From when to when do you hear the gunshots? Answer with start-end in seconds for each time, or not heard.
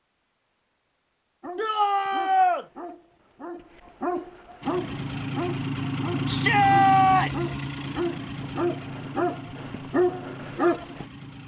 not heard.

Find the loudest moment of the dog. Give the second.
10 s.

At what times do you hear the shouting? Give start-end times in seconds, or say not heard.
1.6-2.6, 6.2-7.5.